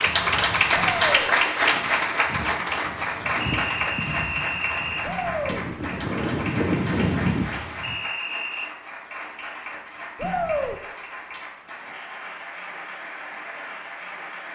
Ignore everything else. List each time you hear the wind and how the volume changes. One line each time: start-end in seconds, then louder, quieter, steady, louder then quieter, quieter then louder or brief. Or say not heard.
0.0-8.0 louder.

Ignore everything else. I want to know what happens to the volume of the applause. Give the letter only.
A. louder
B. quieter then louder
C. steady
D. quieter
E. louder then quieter
D.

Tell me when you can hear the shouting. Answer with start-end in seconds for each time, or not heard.
0.7-1.3, 5.0-5.6, 10.2-10.8.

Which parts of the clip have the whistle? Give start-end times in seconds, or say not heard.
3.4-5.1, 7.8-8.7.